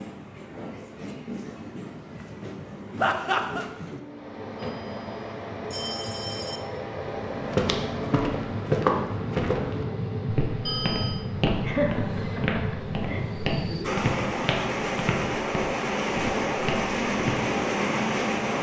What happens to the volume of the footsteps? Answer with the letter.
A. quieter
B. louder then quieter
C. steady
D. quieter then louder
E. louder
A.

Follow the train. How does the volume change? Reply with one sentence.
The loudness of the train goes up.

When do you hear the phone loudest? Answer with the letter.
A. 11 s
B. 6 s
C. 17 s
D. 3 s
A.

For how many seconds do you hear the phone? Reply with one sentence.
The phone can be heard for 2 seconds in total.